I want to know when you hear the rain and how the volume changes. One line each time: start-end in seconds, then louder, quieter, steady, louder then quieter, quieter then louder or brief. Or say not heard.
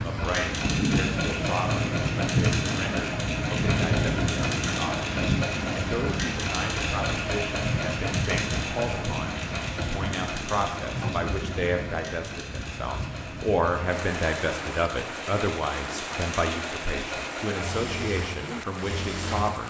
0.0-19.6 quieter.